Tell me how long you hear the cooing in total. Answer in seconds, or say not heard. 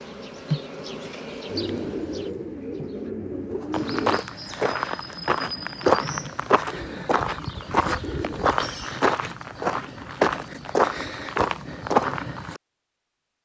5 s.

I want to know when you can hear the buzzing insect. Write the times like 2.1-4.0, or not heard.
0.0-3.1.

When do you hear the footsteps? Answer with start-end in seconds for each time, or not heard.
3.7-12.6.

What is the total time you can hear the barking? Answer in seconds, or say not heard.
not heard.